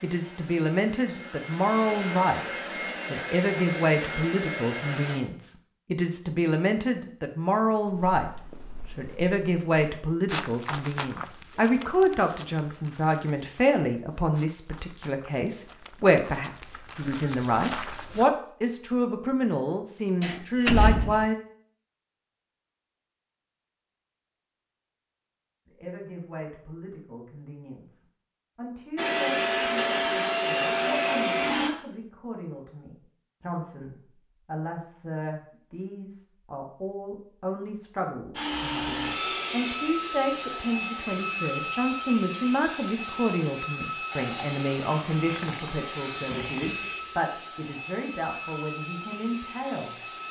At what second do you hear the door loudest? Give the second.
21 s.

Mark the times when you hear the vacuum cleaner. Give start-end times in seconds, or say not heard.
0.0-5.2, 28.9-31.7, 38.3-50.2.